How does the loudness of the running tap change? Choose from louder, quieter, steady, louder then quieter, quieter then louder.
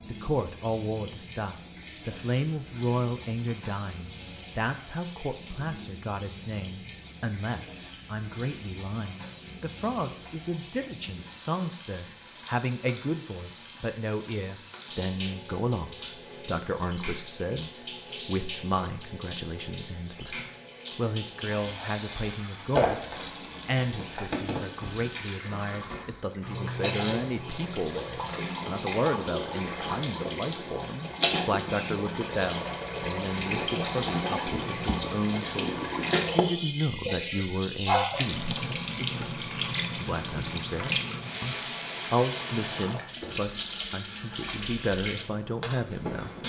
louder.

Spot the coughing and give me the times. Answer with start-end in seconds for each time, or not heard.
not heard.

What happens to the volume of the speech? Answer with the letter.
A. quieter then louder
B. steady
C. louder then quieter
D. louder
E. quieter
B.